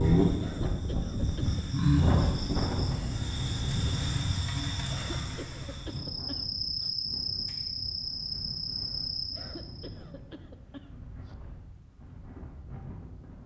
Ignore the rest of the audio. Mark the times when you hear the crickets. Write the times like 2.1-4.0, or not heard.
0.0-9.9.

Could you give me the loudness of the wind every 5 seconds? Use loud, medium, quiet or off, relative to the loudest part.
loud, quiet, quiet.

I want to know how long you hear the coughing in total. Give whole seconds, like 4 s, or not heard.
5 s.